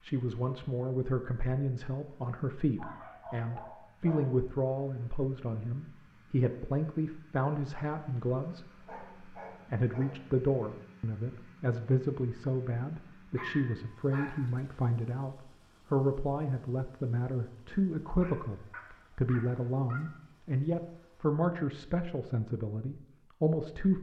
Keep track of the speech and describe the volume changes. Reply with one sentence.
The loudness of the speech stays about the same.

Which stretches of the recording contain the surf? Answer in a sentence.
The surf can't be heard in this clip.